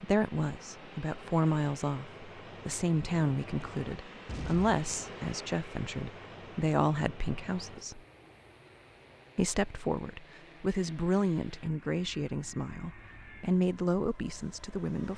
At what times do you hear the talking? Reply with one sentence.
You can hear the talking from 0.0 to 8.0 s and from 9.3 to 15.1 s.